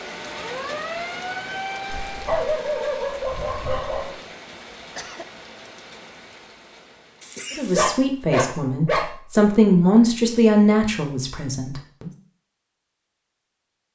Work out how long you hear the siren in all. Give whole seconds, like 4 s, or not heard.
2 s.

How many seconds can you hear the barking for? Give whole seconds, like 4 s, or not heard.
3 s.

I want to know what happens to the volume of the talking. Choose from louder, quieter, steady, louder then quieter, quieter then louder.
louder then quieter.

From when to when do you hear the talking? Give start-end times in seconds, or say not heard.
7.5-12.1.